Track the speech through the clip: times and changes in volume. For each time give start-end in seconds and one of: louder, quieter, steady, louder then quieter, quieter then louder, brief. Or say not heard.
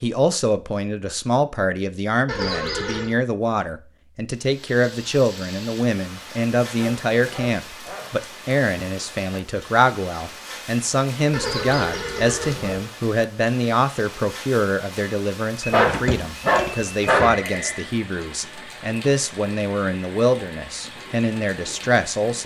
0.0-22.4 steady.